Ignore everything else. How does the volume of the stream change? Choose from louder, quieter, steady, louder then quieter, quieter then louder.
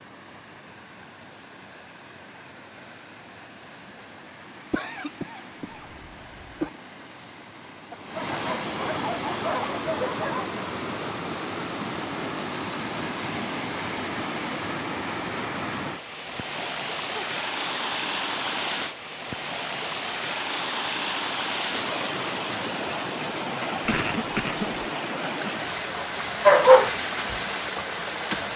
louder.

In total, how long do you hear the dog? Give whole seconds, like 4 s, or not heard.
3 s.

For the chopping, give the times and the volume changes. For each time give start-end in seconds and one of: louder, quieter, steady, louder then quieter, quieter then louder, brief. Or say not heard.
not heard.